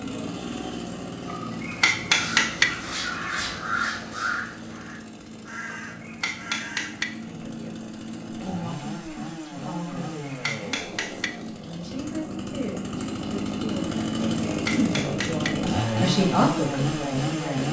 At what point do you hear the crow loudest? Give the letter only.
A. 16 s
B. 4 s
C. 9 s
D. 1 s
B.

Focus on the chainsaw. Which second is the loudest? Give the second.
16 s.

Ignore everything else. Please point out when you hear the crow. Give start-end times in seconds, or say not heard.
2.1-7.0.